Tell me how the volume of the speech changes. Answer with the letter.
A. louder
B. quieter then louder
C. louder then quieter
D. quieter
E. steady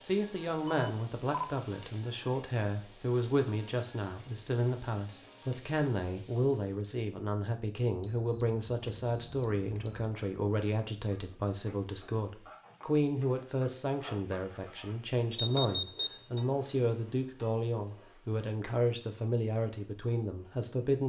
E.